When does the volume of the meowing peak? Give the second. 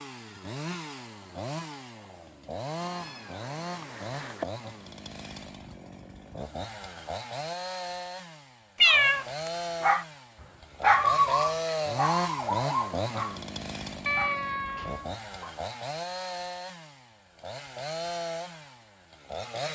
9 s.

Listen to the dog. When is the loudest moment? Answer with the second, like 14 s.
11 s.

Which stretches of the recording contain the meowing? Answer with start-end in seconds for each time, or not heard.
2.8-4.5, 8.8-9.2, 14.1-15.1.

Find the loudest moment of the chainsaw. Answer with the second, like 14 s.
12 s.